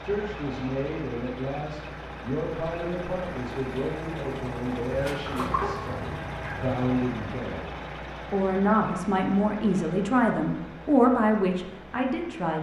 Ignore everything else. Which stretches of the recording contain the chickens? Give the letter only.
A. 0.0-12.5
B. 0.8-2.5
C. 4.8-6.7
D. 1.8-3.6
C.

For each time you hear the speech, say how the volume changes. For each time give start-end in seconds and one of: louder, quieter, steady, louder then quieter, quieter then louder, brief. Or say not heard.
0.0-12.5 louder.